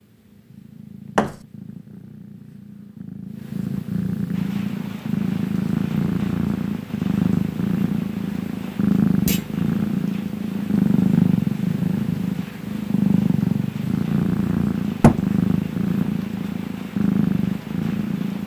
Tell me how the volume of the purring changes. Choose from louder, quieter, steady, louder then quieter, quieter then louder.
louder.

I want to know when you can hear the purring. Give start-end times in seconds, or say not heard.
0.0-18.4.